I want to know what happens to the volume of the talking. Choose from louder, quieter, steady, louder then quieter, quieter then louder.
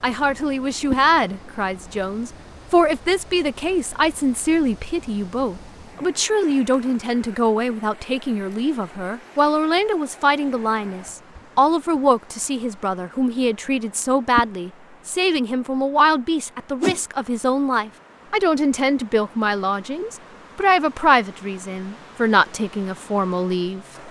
steady.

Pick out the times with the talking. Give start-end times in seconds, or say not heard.
0.0-23.9.